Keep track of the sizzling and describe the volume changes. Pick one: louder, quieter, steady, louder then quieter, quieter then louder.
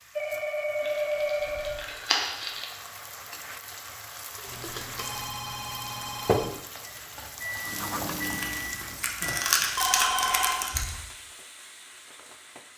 louder then quieter.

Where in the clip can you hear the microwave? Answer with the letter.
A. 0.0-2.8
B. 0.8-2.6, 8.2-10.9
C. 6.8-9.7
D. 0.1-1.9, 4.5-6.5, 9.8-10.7
C.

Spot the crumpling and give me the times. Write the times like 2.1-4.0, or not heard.
0.8-2.6, 8.2-10.9.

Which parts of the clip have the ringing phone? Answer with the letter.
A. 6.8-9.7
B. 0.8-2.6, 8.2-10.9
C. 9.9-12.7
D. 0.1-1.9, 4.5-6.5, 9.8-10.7
D.